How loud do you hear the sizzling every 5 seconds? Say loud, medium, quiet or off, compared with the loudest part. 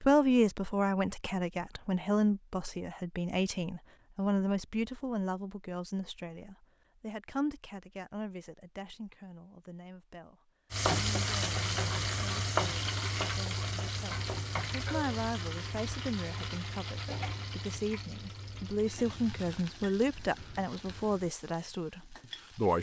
off, off, loud, medium, quiet.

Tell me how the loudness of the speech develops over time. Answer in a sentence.
The loudness of the speech goes down, then up.